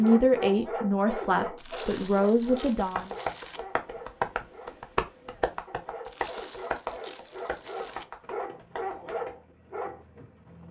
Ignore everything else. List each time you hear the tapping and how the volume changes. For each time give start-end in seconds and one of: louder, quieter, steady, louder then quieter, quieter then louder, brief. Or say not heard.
2.8-9.3 quieter.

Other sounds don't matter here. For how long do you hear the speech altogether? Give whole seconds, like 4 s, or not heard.
3 s.